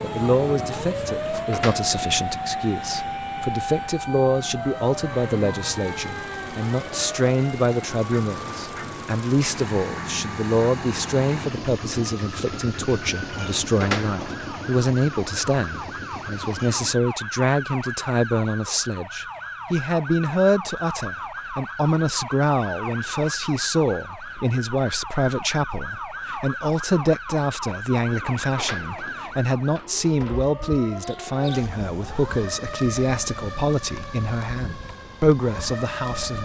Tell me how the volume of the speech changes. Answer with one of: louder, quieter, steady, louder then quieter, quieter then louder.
steady.